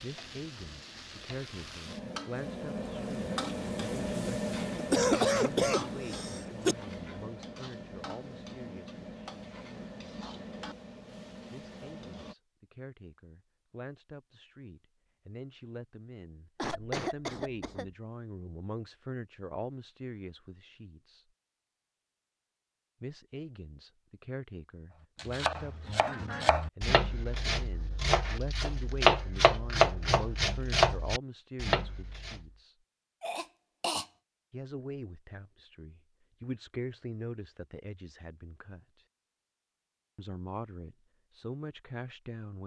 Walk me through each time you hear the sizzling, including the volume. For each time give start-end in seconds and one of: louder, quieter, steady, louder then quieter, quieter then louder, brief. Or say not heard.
0.0-12.3 louder then quieter.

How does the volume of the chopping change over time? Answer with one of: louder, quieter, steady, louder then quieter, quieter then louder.
louder.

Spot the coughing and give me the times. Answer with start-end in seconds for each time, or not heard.
4.8-6.8, 16.6-17.9, 33.2-34.0.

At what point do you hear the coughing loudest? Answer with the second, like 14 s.
5 s.